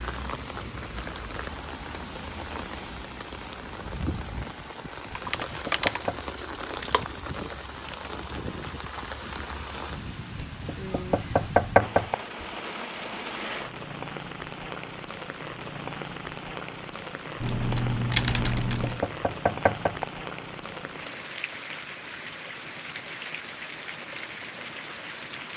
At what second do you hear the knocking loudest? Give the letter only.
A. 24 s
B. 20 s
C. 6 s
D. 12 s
D.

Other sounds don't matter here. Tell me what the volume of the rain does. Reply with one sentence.
The loudness of the rain stays about the same.